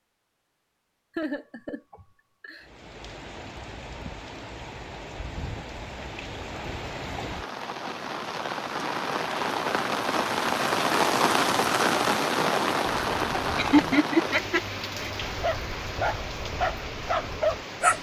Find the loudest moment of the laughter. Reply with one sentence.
The loudest moment of the laughter is at 14 seconds.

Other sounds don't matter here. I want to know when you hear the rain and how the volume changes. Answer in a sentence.
You can hear the rain from 2.5 to 17.9 s, getting louder then quieter.